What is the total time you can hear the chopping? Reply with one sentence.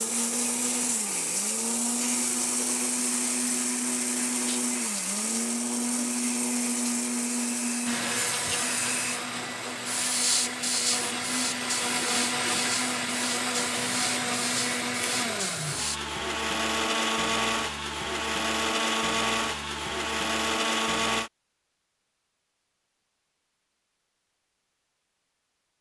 The chopping can't be heard in this clip.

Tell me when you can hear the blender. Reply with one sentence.
The blender can be heard from 0.0 to 21.3 s.